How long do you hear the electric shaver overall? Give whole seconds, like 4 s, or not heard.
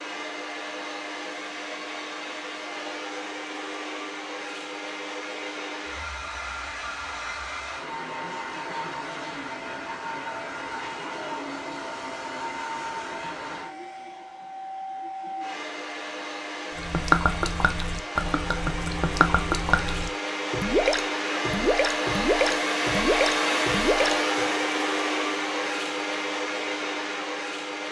not heard.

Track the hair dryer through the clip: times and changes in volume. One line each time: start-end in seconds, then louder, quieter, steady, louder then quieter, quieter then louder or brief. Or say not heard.
0.0-27.8 louder.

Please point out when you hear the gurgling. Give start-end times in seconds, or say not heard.
16.8-24.4.